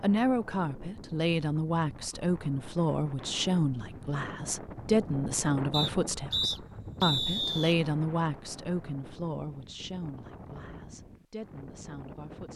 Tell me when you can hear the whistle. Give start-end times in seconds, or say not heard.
5.7-7.8.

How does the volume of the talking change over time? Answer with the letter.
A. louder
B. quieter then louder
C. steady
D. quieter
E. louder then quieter
D.